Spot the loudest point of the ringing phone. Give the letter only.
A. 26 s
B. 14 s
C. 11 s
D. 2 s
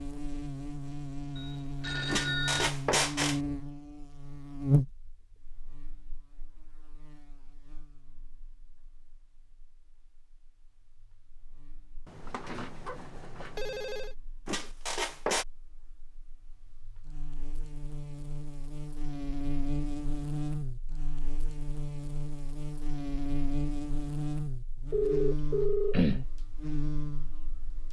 A.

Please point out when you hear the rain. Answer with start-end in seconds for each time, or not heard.
not heard.